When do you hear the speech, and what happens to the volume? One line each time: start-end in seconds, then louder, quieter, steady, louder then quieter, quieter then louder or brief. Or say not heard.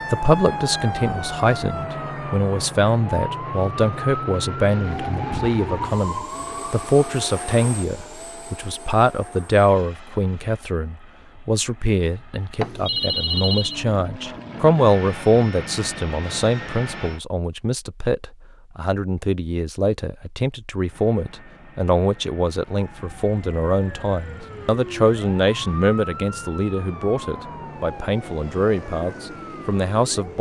0.1-30.3 steady.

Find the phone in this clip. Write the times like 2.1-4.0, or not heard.
12.6-13.8.